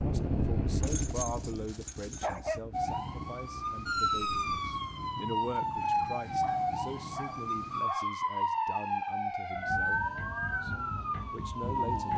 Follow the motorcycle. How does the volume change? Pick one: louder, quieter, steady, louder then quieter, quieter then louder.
quieter.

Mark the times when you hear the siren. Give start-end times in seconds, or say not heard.
2.7-12.1.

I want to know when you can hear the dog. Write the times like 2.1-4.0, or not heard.
0.8-2.6, 6.4-8.1.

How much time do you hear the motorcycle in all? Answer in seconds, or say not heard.
5 s.